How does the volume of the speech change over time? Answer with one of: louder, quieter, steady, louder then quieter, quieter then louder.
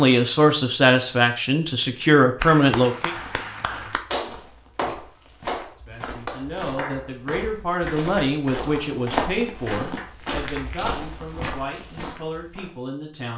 quieter.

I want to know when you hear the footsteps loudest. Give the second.
9 s.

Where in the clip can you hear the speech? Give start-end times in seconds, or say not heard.
0.0-3.1, 5.8-13.3.